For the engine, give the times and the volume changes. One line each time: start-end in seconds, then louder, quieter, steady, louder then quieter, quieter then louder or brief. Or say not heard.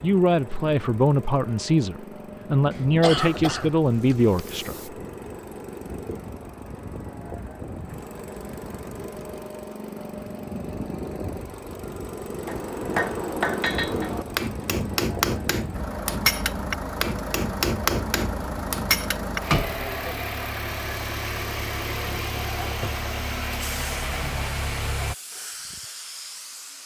0.0-25.1 louder.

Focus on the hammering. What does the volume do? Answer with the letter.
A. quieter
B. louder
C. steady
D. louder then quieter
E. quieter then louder
C.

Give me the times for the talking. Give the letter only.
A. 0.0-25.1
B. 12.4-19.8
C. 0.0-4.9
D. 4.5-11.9
C.